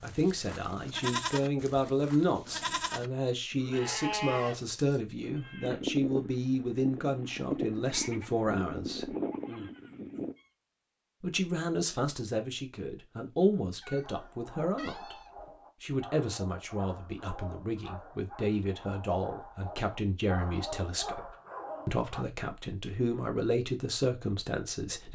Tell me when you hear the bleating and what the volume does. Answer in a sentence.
You can hear the bleating from 0.0 to 10.3 s, at a steady volume.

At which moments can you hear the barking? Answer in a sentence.
You can hear the barking from 14.0 to 22.2 s.